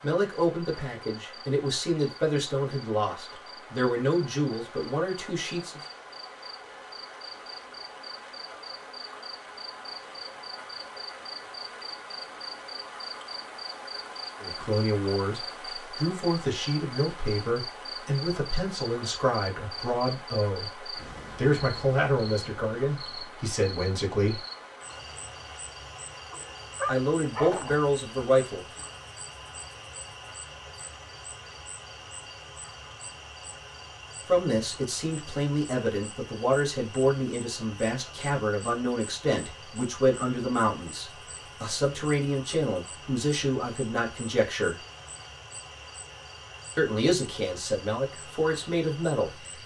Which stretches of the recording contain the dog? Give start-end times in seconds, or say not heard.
26.3-27.9.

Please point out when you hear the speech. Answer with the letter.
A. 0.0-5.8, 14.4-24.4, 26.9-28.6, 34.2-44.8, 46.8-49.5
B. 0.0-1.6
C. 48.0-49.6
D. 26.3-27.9
A.